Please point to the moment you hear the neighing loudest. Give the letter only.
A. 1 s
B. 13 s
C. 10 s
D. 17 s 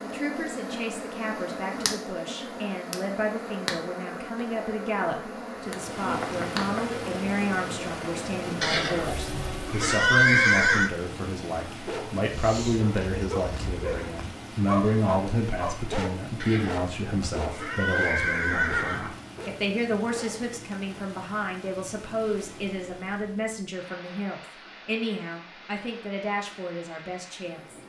C.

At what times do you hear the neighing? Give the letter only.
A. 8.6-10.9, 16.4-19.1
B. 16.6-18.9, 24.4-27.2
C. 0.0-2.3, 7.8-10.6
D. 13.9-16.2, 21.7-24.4
A.